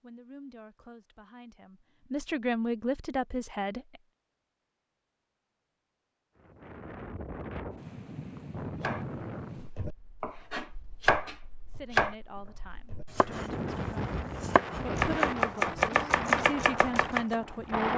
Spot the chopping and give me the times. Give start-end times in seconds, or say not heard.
8.8-12.2, 12.9-17.4.